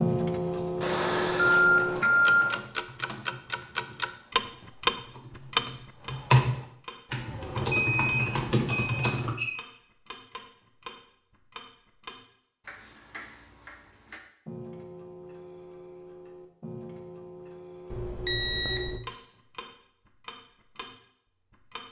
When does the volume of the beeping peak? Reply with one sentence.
The volume of the beeping peaks at 2 seconds.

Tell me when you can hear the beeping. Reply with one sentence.
The beeping can be heard from 0.8 to 2.6 s, from 7.7 to 9.7 s and from 17.9 to 19.0 s.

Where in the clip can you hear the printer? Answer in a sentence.
The printer can't be heard in this clip.